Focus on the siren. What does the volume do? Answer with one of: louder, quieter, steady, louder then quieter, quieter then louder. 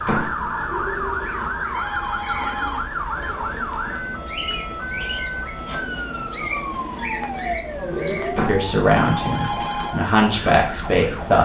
quieter.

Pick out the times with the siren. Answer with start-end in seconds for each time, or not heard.
0.0-11.4.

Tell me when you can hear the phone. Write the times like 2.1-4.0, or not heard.
0.7-3.4, 7.9-10.0.